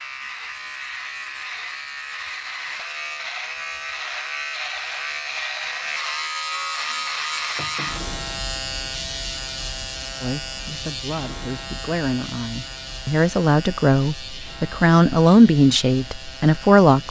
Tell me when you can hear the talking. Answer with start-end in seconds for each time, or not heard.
10.2-17.0.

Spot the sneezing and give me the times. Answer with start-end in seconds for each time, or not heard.
not heard.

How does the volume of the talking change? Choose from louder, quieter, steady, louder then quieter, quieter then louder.
louder.